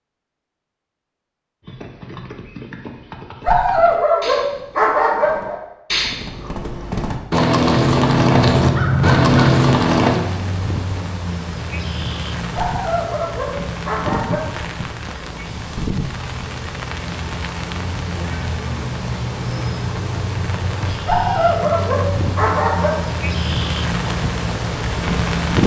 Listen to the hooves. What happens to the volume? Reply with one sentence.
The loudness of the hooves goes up.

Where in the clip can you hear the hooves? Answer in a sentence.
You can hear the hooves from 1.6 to 10.2 s.